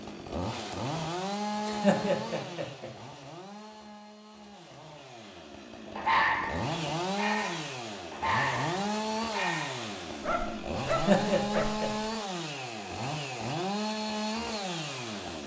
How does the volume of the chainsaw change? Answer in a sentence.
The loudness of the chainsaw goes down, then up.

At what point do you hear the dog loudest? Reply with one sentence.
The loudest moment of the dog is at 6 seconds.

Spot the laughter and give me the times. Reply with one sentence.
You can hear the laughter from 1.6 to 2.9 s and from 10.8 to 11.9 s.